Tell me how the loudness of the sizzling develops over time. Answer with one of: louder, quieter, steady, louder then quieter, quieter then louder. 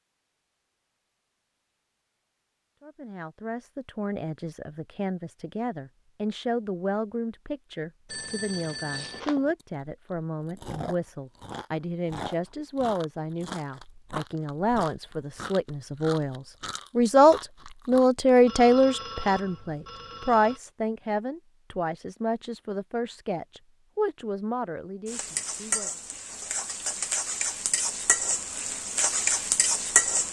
louder.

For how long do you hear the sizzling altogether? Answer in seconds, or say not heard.
5 s.